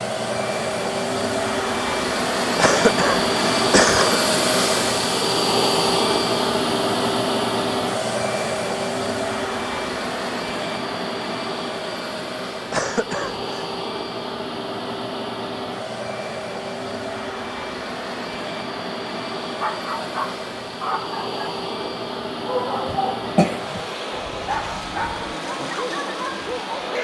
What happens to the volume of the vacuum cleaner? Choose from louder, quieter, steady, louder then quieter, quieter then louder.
quieter.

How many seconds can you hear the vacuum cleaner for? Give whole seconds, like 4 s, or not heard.
27 s.